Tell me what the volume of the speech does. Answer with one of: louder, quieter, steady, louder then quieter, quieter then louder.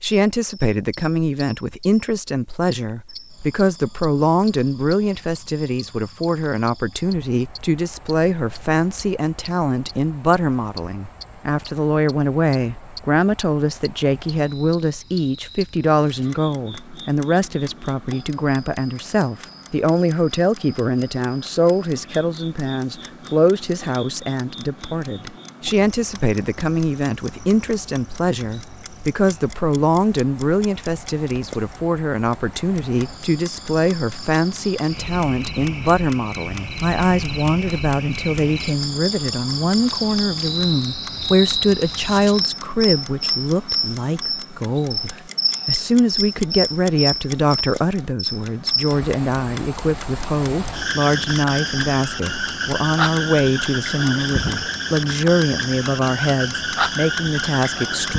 steady.